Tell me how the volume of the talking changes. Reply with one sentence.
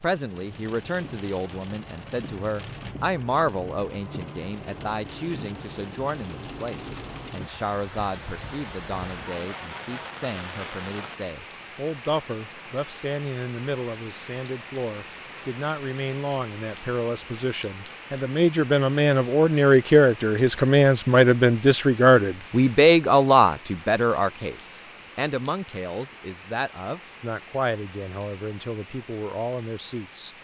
The volume of the talking goes up, then down.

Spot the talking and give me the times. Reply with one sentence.
The talking can be heard from 0.0 to 30.4 s.